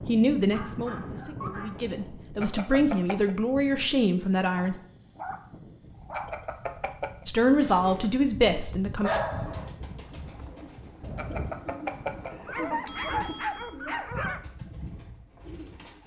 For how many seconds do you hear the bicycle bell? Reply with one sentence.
You can hear the bicycle bell for 5 seconds altogether.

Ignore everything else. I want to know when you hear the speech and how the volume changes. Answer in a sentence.
You can hear the speech from 0.1 to 4.8 s, getting quieter then louder; and briefly from 7.2 to 9.1 s.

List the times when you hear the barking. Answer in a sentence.
You can hear the barking from 0.5 to 1.9 s, from 4.5 to 6.4 s, from 9.0 to 9.7 s and from 12.4 to 14.4 s.